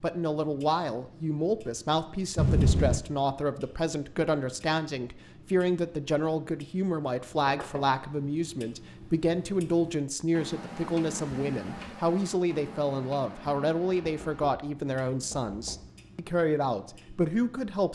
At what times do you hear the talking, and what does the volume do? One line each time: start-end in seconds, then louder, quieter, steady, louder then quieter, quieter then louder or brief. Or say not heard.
0.0-17.9 steady.